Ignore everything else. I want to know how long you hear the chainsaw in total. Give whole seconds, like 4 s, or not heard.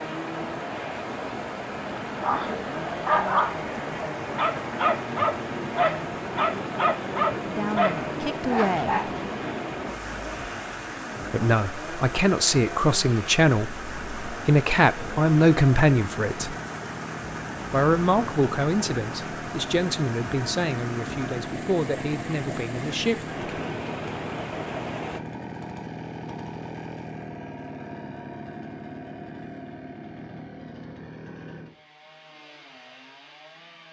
34 s.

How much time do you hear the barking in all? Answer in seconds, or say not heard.
6 s.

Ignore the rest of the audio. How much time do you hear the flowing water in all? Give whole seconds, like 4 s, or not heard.
25 s.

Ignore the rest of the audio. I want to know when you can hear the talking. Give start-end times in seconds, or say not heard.
7.5-9.1, 11.3-16.6, 17.7-23.4.